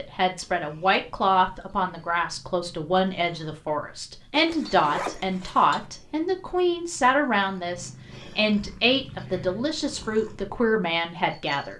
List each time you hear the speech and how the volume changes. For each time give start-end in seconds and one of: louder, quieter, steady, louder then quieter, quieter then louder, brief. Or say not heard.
0.0-11.7 steady.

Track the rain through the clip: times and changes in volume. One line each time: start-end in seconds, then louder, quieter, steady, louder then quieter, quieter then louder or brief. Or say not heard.
not heard.